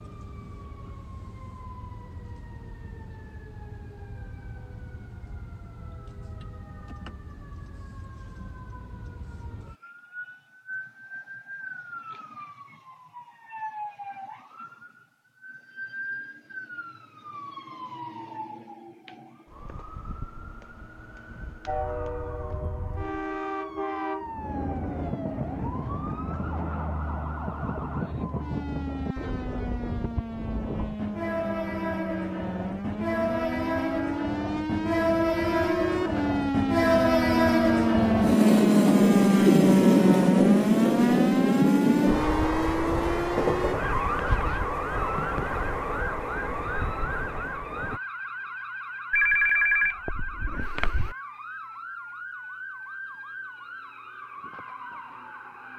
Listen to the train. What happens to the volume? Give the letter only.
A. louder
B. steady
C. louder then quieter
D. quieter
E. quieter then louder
C.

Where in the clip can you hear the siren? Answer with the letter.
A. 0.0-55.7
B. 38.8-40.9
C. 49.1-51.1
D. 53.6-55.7
A.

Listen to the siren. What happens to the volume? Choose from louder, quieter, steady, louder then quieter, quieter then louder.
louder then quieter.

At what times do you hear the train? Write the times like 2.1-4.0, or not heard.
21.6-48.0.